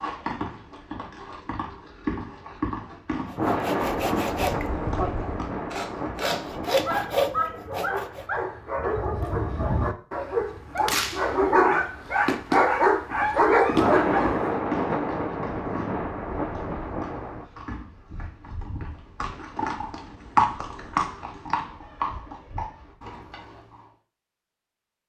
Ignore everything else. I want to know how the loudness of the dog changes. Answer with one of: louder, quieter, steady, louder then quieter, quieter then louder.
louder.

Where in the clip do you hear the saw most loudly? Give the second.
7 s.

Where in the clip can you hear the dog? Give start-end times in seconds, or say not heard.
6.7-14.6.